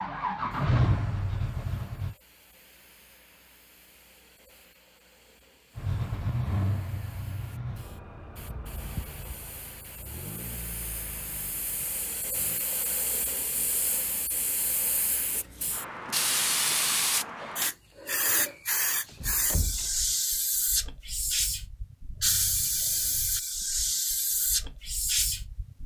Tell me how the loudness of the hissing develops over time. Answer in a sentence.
The loudness of the hissing goes up.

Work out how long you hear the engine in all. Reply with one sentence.
You can hear the engine for 9 seconds altogether.